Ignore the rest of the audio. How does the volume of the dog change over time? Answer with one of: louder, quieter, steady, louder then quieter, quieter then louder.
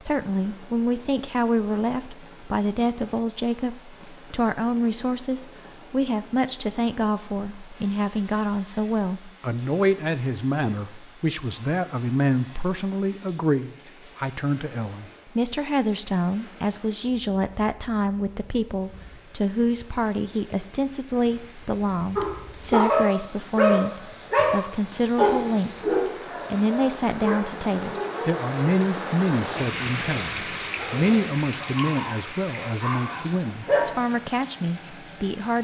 quieter then louder.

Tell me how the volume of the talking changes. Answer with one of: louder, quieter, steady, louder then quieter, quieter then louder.
steady.